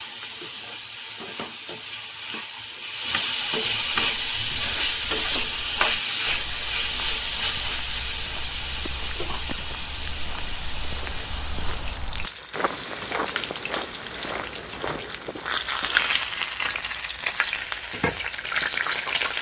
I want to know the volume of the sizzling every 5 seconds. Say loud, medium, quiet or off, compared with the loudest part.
loud, loud, medium, loud.